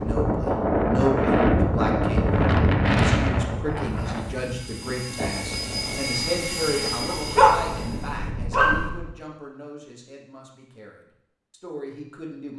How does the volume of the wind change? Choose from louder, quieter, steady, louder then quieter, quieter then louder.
quieter.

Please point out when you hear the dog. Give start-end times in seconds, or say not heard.
7.0-8.9.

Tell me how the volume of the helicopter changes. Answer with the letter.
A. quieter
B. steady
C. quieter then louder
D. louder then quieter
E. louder
D.